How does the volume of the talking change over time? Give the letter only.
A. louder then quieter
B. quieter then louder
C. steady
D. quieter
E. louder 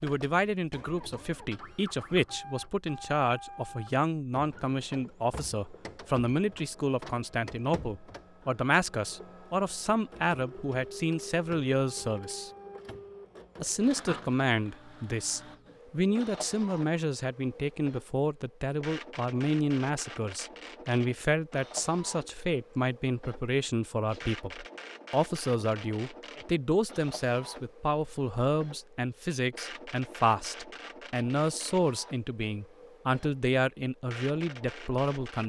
C.